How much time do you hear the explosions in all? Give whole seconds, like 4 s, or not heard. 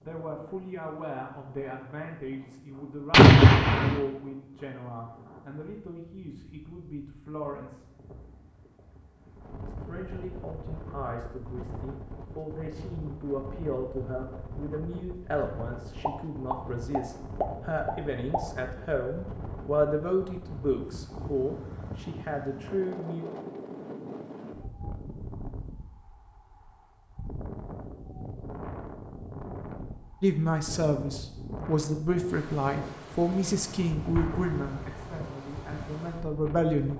4 s.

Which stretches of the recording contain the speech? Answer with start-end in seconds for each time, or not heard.
0.0-7.8, 9.7-23.2, 30.2-36.9.